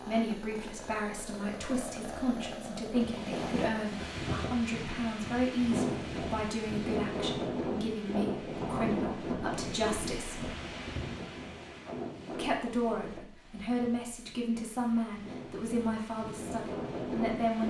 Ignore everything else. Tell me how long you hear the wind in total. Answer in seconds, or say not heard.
15 s.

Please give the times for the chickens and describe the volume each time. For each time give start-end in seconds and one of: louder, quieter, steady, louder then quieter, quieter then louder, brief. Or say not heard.
not heard.